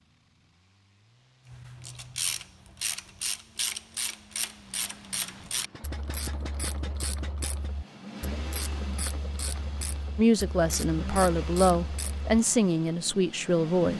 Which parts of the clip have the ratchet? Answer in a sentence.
The ratchet can be heard from 1.5 to 12.3 s.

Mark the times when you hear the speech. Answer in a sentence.
The speech can be heard from 10.2 to 13.9 s.